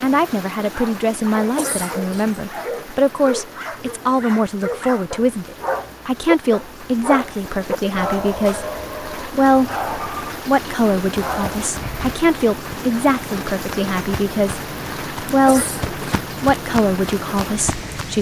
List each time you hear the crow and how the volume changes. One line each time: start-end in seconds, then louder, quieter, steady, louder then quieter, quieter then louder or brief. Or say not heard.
not heard.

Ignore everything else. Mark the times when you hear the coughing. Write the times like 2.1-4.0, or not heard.
1.6-2.4, 15.4-16.2.